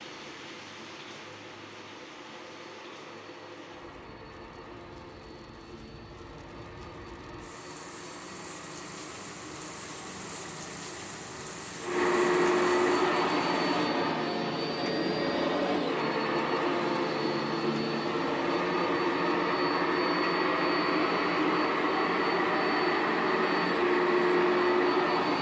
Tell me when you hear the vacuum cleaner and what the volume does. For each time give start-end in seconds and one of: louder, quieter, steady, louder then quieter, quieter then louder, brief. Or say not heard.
0.0-25.3 louder.